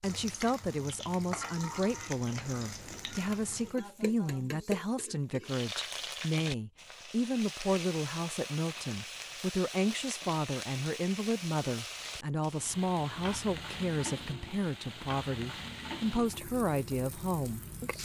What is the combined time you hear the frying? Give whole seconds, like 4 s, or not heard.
18 s.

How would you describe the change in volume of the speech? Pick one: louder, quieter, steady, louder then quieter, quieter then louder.
steady.